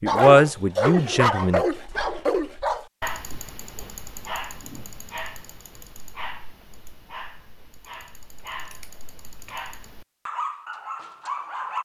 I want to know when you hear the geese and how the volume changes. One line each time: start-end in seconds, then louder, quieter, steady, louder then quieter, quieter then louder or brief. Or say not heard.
not heard.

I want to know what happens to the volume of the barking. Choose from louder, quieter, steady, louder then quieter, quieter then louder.
quieter then louder.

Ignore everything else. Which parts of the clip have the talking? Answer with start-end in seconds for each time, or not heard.
0.0-1.6.